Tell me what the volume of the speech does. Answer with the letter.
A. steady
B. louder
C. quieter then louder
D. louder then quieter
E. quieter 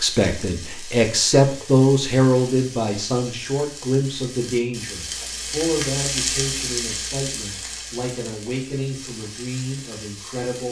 E.